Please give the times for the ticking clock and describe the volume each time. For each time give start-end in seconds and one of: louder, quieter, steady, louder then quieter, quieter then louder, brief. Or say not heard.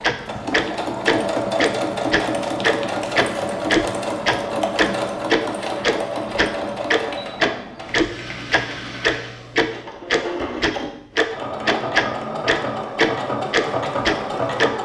0.0-14.7 steady.